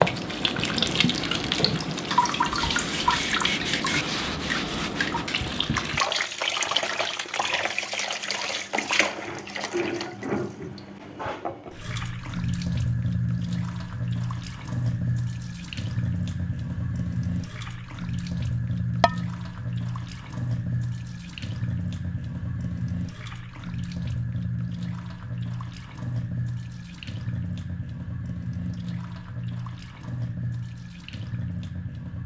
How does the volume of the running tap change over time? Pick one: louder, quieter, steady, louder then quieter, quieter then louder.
quieter.